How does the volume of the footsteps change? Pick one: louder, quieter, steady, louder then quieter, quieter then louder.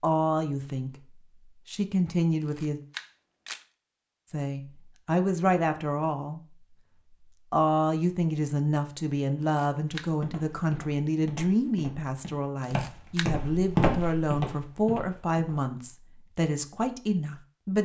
louder then quieter.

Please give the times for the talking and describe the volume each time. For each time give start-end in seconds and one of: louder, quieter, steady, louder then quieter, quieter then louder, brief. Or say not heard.
0.0-0.9 brief
1.6-2.8 brief
4.2-6.4 brief
7.5-17.8 steady.